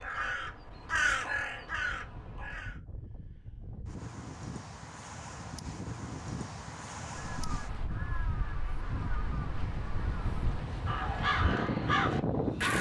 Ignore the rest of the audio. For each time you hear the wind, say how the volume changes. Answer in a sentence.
The wind can be heard from 0.0 to 12.7 s, getting louder.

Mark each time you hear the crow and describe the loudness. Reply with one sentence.
The crow can be heard briefly from 0.0 to 2.8 s; and from 7.2 to 12.7 s, getting louder.